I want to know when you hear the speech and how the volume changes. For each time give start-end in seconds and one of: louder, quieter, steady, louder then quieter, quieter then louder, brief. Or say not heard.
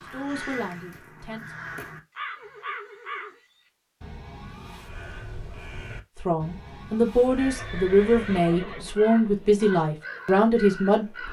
0.0-1.6 brief
6.2-11.2 steady.